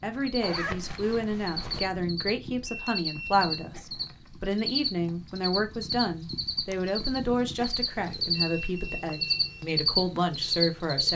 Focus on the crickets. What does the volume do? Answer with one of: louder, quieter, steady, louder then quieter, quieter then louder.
louder.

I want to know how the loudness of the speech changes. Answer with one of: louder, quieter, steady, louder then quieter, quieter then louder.
steady.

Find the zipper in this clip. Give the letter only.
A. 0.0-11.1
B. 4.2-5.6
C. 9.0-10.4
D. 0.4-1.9
D.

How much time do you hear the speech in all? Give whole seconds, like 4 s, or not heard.
11 s.